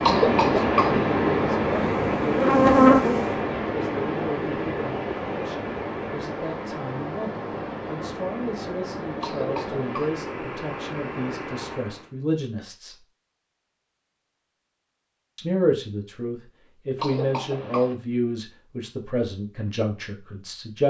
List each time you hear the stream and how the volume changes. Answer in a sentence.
The stream can be heard from 0.0 to 12.1 s, getting quieter.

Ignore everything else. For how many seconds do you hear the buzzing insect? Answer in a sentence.
The buzzing insect can be heard for 2 seconds in total.